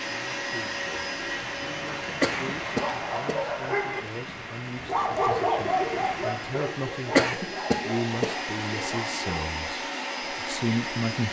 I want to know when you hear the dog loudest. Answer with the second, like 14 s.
5 s.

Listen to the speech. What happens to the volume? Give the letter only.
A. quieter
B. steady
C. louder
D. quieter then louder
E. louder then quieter
C.